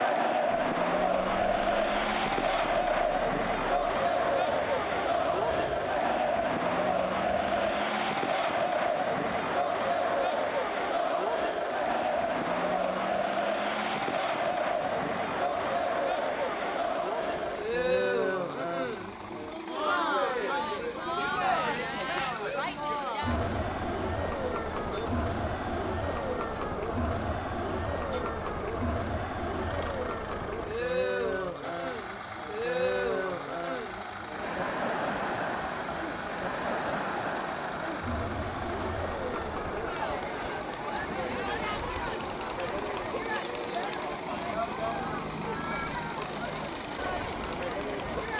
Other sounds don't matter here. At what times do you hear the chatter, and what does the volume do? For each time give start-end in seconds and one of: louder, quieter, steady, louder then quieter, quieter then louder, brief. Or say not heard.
0.0-48.3 quieter.